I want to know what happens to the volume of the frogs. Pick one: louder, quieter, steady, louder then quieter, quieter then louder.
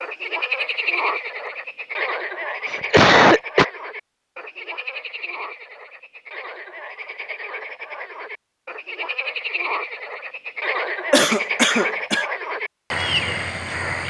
quieter then louder.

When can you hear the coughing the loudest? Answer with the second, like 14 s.
3 s.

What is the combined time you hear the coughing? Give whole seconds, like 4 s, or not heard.
2 s.